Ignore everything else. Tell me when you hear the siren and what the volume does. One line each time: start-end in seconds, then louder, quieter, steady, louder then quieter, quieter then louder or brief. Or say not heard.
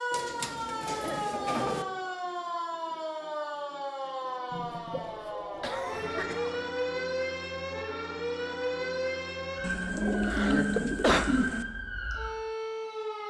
0.0-13.2 steady.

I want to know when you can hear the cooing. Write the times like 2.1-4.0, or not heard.
0.1-1.9, 4.5-6.2, 9.6-11.7.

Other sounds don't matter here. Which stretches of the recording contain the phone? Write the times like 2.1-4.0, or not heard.
not heard.